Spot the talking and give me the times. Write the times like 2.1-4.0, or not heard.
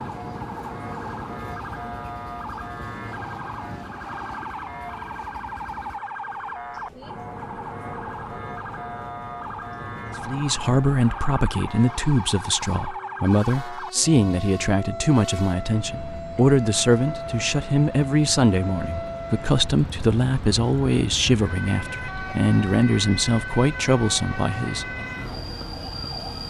10.2-25.1.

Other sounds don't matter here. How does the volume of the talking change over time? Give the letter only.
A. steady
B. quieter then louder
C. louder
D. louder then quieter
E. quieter
A.